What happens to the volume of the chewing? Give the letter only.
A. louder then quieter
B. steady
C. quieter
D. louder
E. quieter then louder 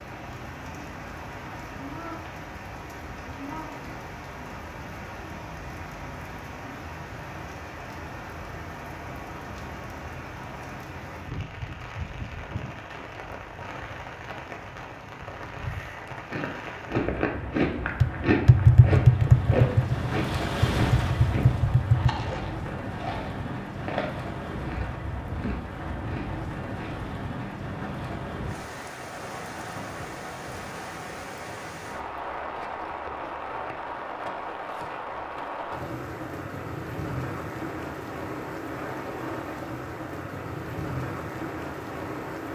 C.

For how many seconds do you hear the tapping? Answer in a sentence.
You can hear the tapping for 4 seconds altogether.